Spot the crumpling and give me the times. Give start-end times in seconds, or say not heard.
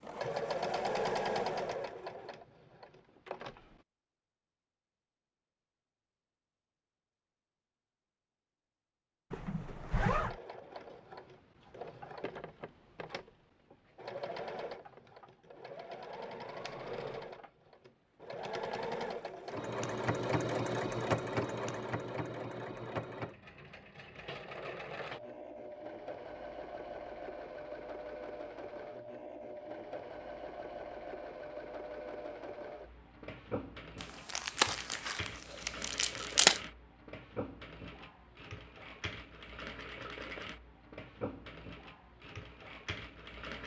34.0-36.6.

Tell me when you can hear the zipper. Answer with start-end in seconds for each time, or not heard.
9.3-10.3.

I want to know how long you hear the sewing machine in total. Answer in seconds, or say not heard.
37 s.